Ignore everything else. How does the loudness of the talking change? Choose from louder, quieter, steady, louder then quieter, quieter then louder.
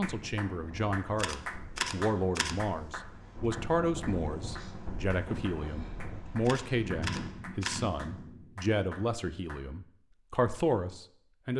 steady.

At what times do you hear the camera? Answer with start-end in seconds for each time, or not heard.
1.1-3.1, 6.5-8.0.